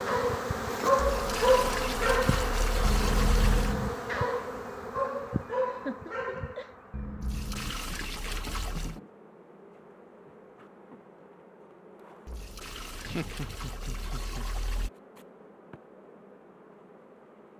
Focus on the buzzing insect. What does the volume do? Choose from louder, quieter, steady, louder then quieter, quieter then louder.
quieter.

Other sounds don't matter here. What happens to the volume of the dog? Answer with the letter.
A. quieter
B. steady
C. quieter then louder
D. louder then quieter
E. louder
A.